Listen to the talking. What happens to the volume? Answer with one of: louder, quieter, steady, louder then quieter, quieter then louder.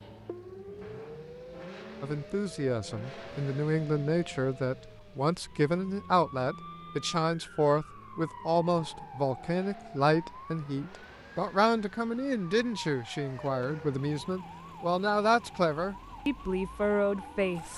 steady.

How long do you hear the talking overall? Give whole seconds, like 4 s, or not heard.
16 s.